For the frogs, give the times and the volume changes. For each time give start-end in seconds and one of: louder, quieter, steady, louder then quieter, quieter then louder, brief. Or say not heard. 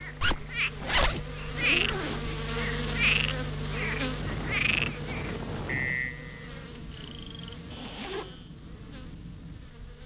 0.0-8.6 quieter.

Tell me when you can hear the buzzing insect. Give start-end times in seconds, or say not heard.
0.0-10.0.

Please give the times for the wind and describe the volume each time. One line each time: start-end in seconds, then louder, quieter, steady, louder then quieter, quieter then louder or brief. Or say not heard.
4.1-10.0 quieter.